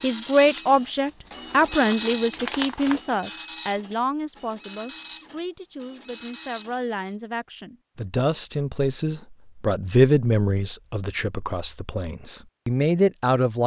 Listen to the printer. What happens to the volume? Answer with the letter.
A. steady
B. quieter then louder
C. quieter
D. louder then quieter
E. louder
D.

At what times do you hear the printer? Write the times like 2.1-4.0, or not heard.
0.0-7.2.